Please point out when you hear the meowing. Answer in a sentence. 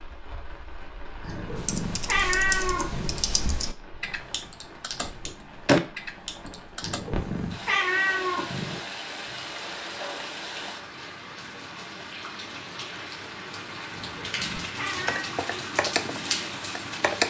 You can hear the meowing from 1.2 to 3.2 s, from 6.8 to 8.8 s and from 13.9 to 15.3 s.